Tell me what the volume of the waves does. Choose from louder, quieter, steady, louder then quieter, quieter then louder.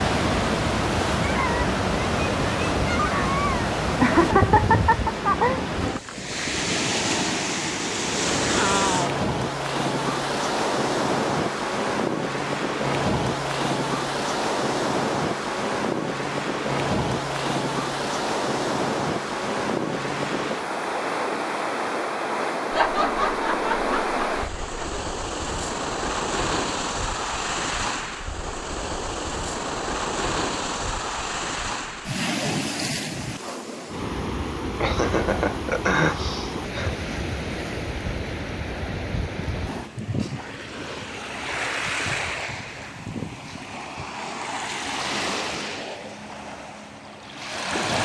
quieter.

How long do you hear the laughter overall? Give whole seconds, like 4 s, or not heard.
6 s.